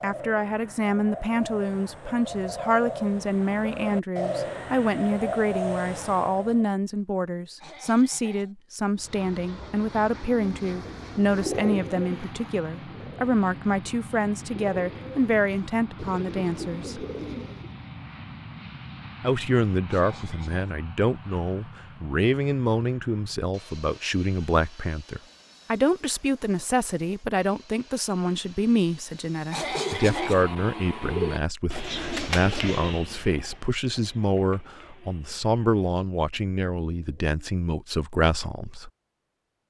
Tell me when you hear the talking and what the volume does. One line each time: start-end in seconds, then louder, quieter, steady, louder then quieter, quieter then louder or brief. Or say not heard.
0.0-17.1 steady
19.2-38.9 steady.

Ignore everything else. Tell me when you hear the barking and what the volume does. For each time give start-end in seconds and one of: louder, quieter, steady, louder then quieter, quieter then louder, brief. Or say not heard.
not heard.